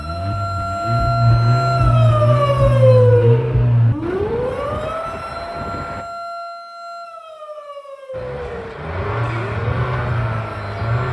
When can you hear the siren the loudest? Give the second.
3 s.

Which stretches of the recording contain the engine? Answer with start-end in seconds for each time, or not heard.
0.0-6.0, 8.1-11.0.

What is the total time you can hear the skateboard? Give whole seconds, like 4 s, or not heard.
not heard.